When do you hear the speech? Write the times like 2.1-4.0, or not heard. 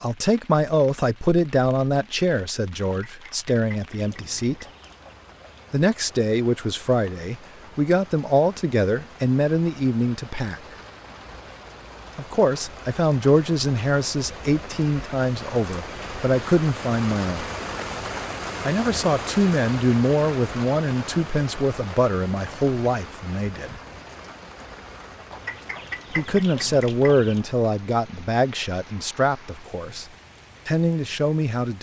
0.0-4.7, 5.7-10.6, 12.2-17.5, 18.6-23.8, 26.1-30.1, 30.6-31.7.